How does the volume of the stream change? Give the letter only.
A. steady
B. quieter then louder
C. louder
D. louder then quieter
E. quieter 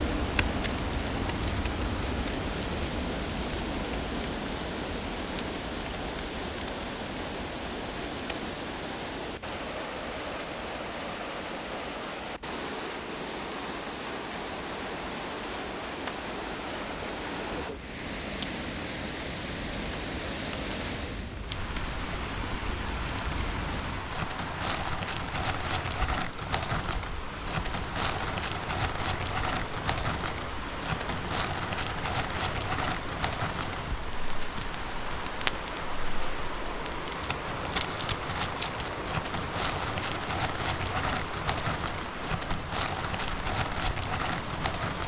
A.